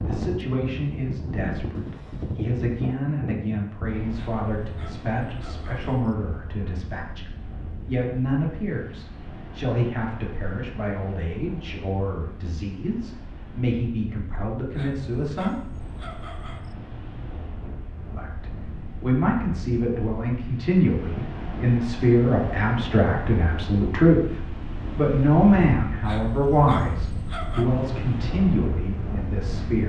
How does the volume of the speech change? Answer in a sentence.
The volume of the speech goes up.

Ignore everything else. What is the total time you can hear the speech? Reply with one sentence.
The speech can be heard for 27 seconds in total.